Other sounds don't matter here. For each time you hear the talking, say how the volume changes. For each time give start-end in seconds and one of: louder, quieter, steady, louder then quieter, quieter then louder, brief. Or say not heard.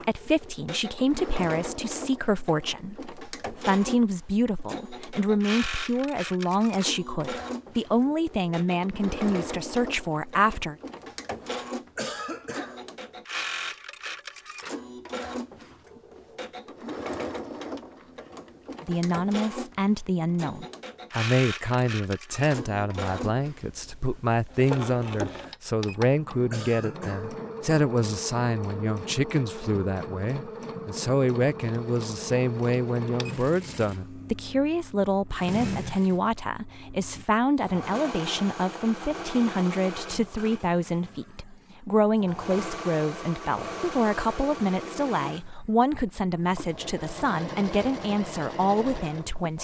0.0-10.8 steady
18.8-49.5 steady.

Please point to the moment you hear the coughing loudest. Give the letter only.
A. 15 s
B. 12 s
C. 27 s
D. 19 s
B.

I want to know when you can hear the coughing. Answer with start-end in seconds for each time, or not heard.
11.9-12.8, 26.5-27.4.